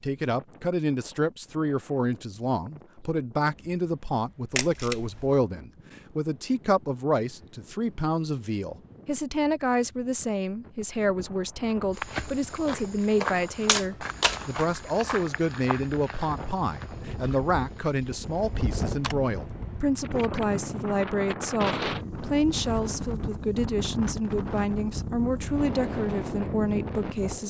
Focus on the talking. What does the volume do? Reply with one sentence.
The loudness of the talking stays about the same.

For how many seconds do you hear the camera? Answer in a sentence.
The camera can be heard for 3 seconds in total.